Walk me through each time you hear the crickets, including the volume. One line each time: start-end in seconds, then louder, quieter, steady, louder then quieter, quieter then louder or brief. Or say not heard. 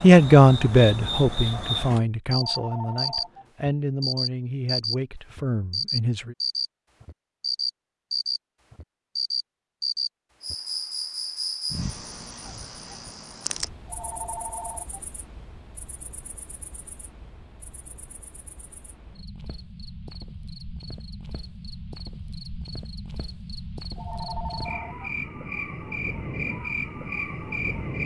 0.0-28.0 quieter then louder.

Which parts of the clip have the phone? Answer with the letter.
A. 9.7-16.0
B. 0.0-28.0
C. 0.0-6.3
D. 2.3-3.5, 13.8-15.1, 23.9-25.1
D.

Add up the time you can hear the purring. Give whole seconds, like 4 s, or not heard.
not heard.